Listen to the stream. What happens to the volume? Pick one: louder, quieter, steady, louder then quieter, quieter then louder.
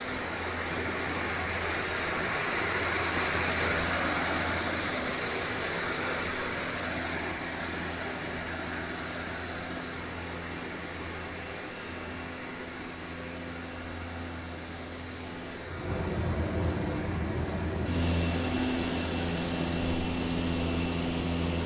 quieter.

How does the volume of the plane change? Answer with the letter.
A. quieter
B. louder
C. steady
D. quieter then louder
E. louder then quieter
B.